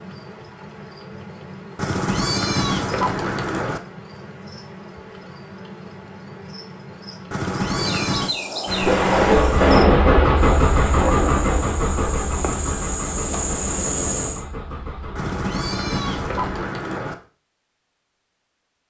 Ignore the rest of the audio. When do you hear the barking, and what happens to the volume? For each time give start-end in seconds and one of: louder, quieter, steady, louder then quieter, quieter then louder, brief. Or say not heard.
not heard.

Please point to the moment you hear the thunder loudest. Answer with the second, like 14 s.
10 s.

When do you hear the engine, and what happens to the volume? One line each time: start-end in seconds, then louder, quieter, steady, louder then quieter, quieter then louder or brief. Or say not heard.
8.7-16.6 quieter.